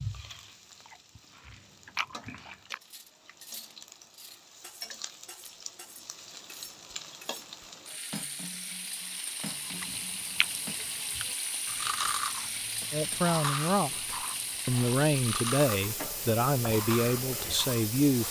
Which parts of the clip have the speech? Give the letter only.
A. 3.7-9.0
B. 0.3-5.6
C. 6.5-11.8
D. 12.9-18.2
D.